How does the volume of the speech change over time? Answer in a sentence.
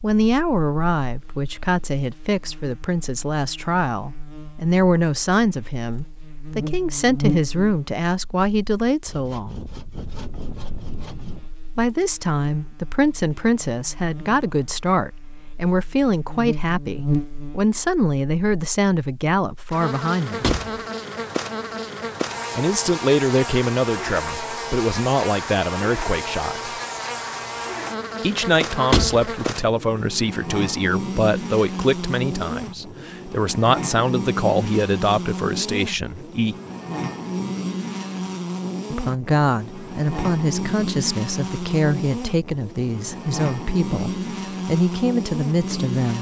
The loudness of the speech stays about the same.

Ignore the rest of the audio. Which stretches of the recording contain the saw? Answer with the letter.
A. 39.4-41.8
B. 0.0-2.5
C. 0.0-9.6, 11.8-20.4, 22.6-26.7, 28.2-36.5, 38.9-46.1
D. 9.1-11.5
D.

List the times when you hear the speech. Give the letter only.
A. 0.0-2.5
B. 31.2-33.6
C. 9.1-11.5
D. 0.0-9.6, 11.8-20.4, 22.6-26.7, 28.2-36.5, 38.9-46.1
D.